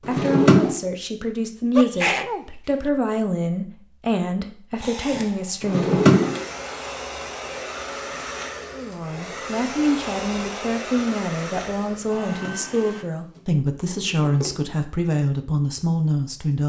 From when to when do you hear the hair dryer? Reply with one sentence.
You can hear the hair dryer from 4.8 to 13.1 s.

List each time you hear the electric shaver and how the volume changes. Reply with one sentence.
You can't hear the electric shaver here.